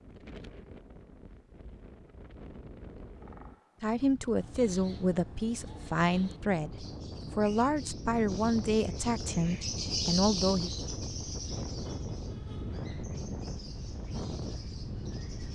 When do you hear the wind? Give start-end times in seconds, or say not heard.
0.0-15.4.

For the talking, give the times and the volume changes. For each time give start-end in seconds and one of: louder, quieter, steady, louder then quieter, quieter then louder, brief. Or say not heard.
3.8-10.7 steady.